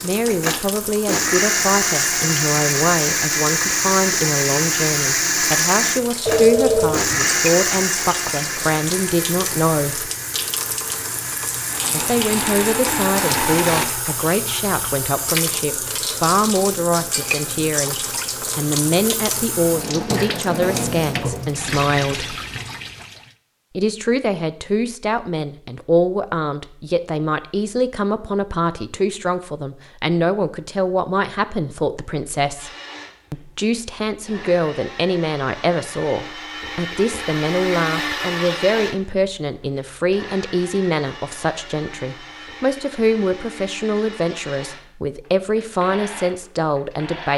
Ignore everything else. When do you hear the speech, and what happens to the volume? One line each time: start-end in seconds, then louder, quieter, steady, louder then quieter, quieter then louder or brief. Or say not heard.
0.0-10.1 steady
11.9-22.4 steady
23.8-32.7 steady
33.3-47.3 steady.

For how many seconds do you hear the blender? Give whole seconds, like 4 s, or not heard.
29 s.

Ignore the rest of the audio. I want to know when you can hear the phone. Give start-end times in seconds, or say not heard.
6.2-7.3.